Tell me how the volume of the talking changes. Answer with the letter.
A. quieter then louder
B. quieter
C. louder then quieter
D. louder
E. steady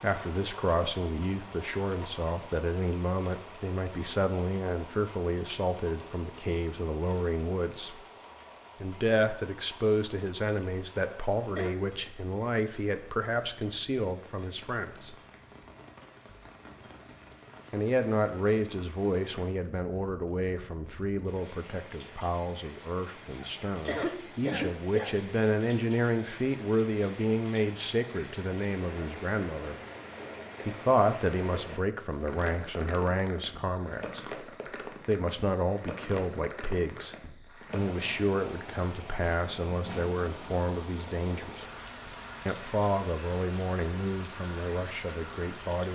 E.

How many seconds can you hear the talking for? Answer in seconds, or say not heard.
40 s.